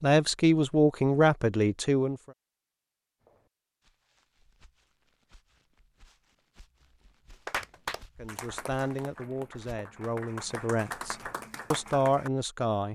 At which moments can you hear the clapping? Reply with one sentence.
The clapping can be heard from 7.5 to 12.3 s.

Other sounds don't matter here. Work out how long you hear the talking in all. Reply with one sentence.
The talking can be heard for 7 seconds in total.